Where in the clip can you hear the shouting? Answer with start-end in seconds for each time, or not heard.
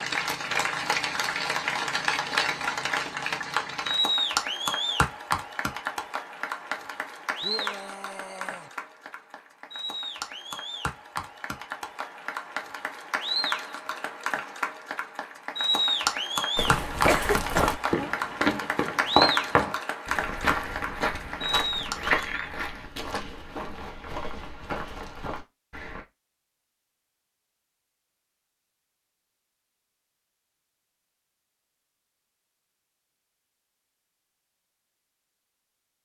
7.4-8.7.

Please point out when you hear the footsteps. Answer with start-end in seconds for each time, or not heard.
16.6-26.1.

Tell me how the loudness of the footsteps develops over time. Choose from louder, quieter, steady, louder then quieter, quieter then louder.
quieter.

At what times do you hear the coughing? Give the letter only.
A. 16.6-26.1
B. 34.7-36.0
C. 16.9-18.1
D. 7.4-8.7
C.